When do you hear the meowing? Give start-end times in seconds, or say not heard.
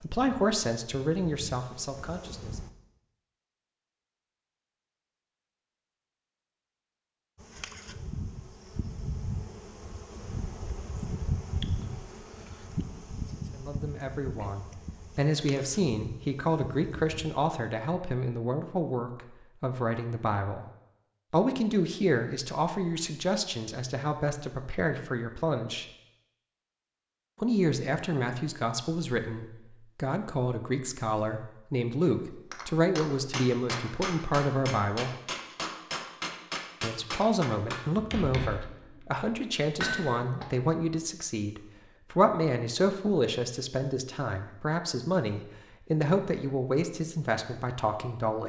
not heard.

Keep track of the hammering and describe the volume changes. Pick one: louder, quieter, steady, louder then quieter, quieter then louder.
steady.